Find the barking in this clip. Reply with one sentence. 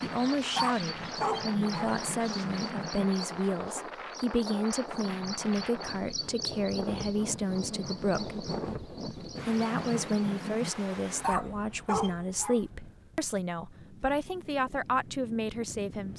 You can hear the barking from 0.2 to 1.9 s and from 10.9 to 12.6 s.